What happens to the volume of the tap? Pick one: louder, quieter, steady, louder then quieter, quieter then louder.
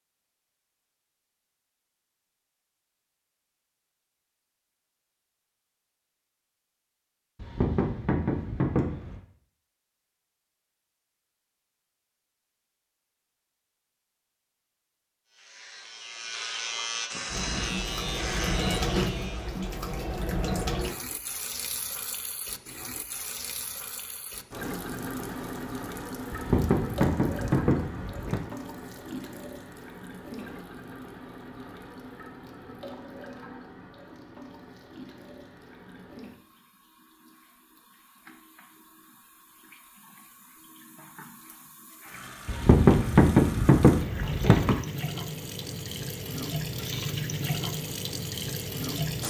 quieter then louder.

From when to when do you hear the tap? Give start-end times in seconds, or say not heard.
17.2-49.2.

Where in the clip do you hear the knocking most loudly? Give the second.
43 s.